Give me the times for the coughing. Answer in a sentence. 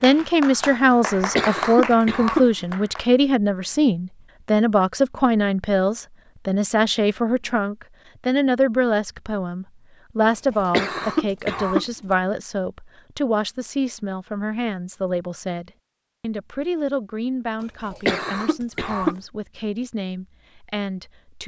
You can hear the coughing from 1.2 to 2.8 s, from 10.5 to 12.2 s and from 17.6 to 19.1 s.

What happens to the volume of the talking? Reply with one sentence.
The loudness of the talking goes down.